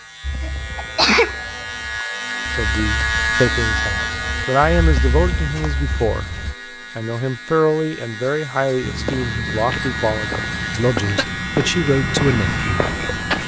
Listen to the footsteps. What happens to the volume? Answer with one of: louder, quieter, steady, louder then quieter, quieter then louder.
louder.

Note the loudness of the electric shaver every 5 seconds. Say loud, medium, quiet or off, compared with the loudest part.
loud, medium, loud.